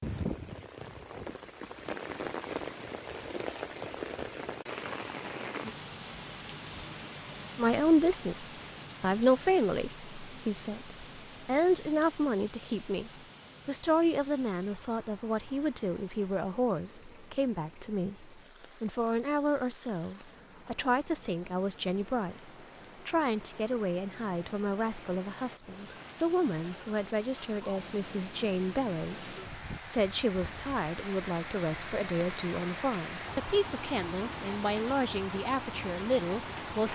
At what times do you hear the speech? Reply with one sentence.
The speech can be heard from 7.5 to 36.9 s.